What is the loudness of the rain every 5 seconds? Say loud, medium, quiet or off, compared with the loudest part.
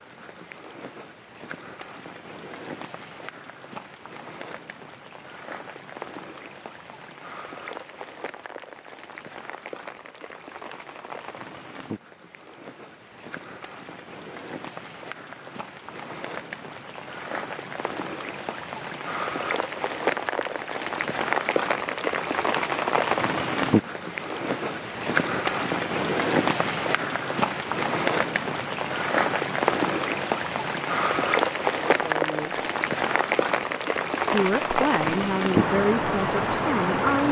quiet, quiet, quiet, medium, loud, loud, loud, loud.